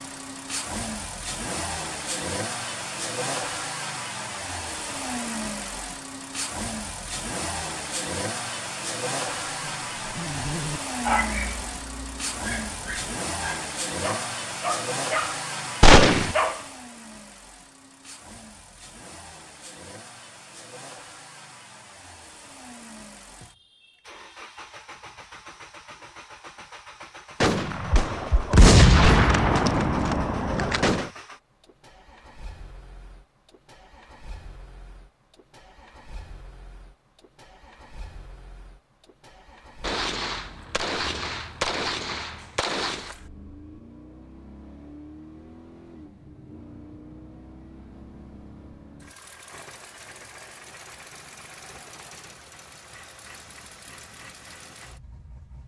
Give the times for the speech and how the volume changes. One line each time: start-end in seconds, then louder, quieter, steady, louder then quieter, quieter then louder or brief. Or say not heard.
not heard.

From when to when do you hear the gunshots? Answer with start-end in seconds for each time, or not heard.
15.8-16.4, 27.4-31.1, 39.8-43.1.